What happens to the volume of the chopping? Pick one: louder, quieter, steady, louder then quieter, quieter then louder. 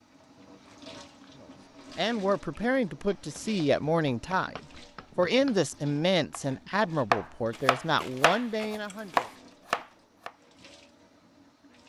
louder.